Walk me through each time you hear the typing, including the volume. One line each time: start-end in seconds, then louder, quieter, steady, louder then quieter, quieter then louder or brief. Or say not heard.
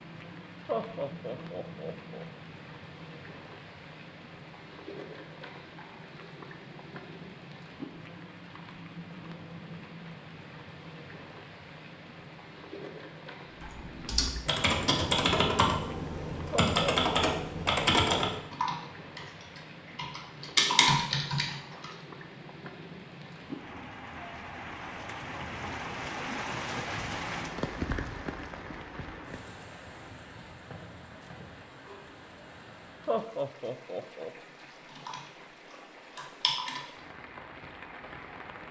13.6-21.9 quieter then louder
34.5-37.0 brief.